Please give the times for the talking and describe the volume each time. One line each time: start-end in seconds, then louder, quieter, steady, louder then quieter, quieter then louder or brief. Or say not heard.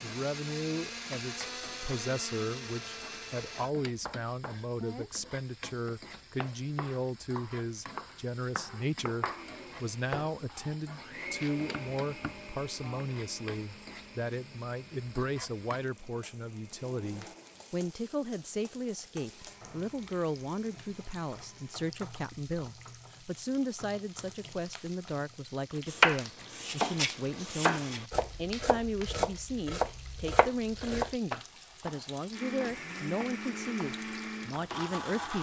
0.0-35.3 steady.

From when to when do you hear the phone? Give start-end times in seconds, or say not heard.
not heard.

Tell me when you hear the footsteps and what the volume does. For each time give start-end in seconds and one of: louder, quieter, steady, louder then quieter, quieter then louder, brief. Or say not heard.
not heard.